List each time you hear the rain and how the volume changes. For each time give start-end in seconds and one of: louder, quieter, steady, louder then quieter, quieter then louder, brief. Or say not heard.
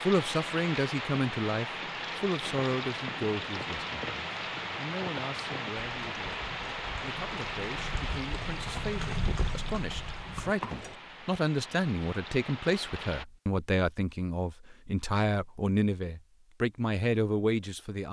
0.0-13.2 quieter.